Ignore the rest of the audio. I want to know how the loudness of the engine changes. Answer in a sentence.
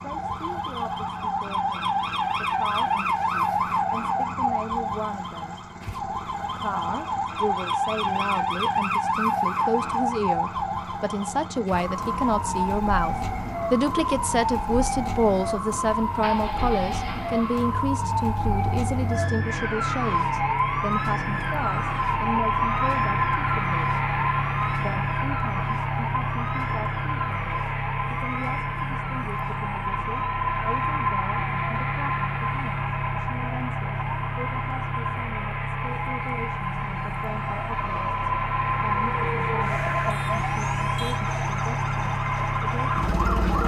The volume of the engine goes up.